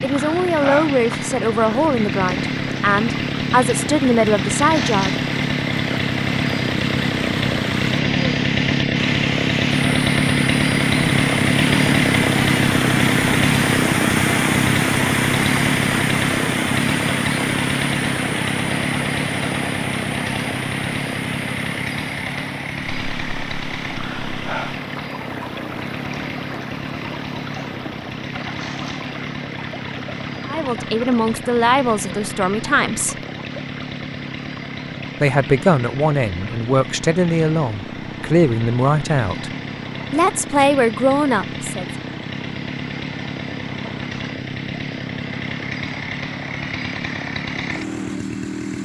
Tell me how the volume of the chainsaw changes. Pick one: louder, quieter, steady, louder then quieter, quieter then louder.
quieter.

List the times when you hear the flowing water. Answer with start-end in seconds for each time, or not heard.
0.0-48.8.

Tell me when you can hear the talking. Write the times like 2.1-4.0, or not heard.
0.0-5.2, 30.4-33.1, 35.2-39.5, 40.1-41.9.